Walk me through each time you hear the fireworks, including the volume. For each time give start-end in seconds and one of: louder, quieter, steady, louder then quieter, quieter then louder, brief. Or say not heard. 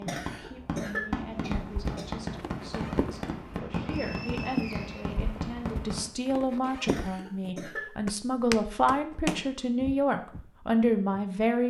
0.0-6.1 steady.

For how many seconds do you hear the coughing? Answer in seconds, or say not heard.
3 s.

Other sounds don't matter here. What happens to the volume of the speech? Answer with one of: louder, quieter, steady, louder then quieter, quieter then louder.
louder.